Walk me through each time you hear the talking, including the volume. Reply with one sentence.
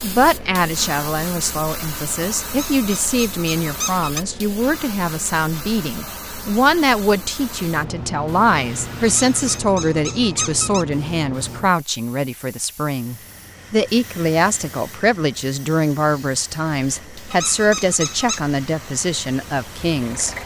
The talking can be heard from 0.0 to 20.4 s, at a steady volume.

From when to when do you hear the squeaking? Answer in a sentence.
The squeaking can be heard from 2.5 to 4.2 s, from 9.1 to 10.8 s and from 17.3 to 18.4 s.